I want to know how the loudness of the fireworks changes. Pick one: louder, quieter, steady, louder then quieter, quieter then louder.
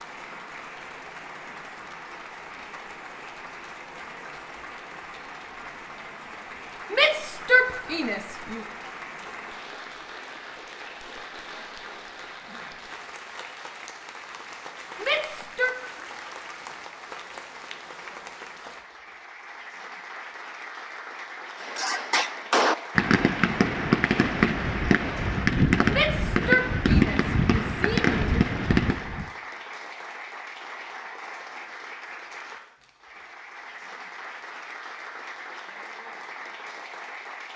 steady.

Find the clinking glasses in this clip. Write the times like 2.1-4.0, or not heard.
not heard.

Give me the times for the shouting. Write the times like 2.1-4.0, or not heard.
6.9-8.6, 15.0-15.8, 25.9-28.4.